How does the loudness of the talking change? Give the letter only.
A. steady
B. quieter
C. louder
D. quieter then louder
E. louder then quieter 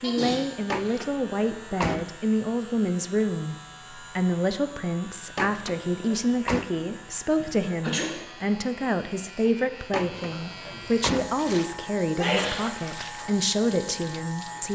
A.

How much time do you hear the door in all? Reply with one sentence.
The door can be heard for 4 seconds in total.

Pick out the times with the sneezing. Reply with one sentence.
You can hear the sneezing from 0.0 to 1.0 s, from 7.3 to 8.2 s and from 12.2 to 12.7 s.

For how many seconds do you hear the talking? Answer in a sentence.
You can hear the talking for 15 seconds altogether.